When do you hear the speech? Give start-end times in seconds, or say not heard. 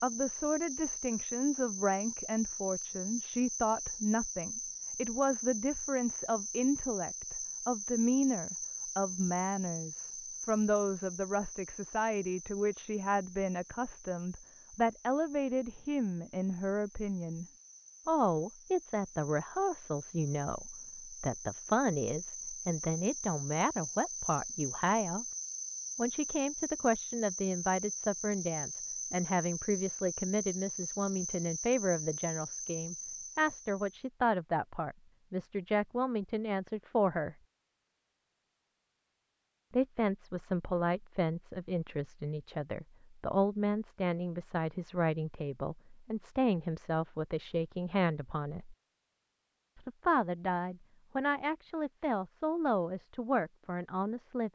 0.0-17.4, 18.1-25.2, 25.9-37.4, 39.7-48.8, 49.8-54.5.